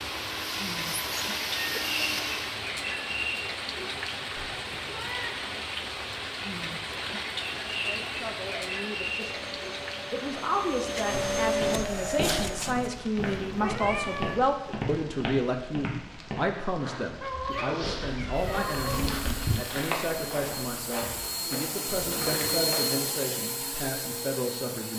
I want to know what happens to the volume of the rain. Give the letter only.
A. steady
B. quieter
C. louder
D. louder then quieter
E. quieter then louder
B.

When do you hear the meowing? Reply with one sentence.
You can hear the meowing from 4.3 to 5.5 s, from 13.2 to 14.4 s and from 17.8 to 19.6 s.